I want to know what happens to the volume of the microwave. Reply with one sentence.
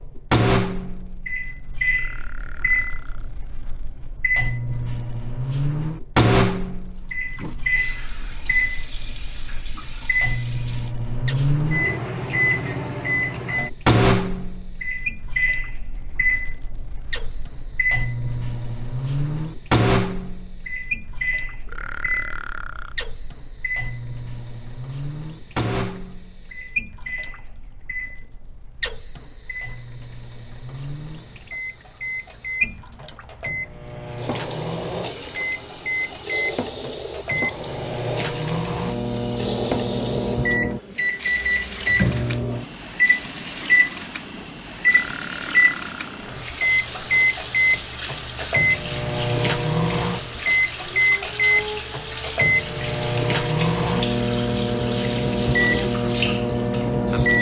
The volume of the microwave goes down, then up.